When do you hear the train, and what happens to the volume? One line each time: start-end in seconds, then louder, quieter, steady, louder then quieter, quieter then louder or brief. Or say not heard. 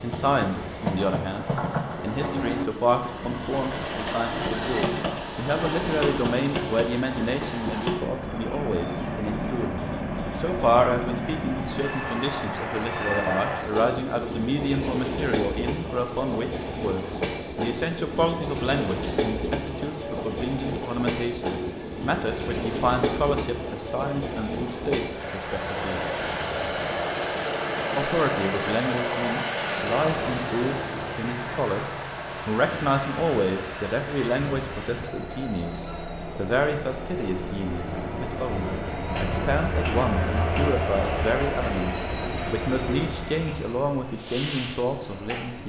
0.0-45.6 steady.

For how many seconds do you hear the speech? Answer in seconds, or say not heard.
44 s.